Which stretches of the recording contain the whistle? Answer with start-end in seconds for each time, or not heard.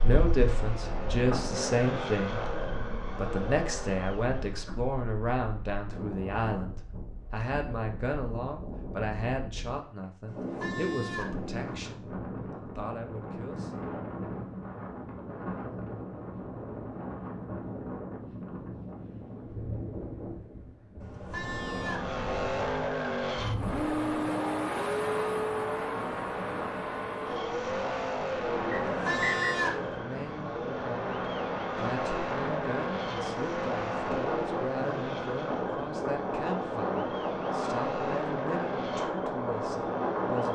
28.7-29.6.